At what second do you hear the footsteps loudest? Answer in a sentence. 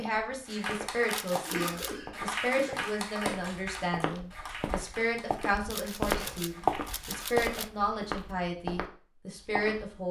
The loudest moment of the footsteps is at 7 seconds.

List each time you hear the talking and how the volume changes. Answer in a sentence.
You can hear the talking from 0.0 to 10.0 s, at a steady volume.